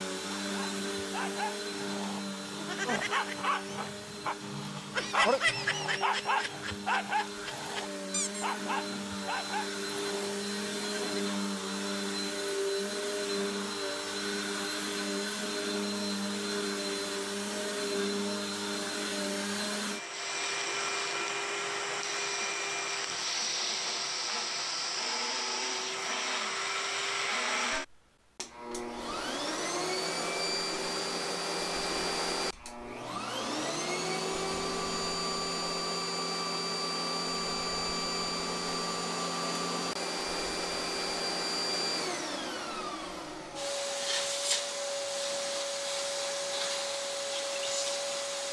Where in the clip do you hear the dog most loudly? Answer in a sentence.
The loudest moment of the dog is at 5 seconds.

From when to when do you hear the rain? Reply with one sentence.
You can't hear the rain here.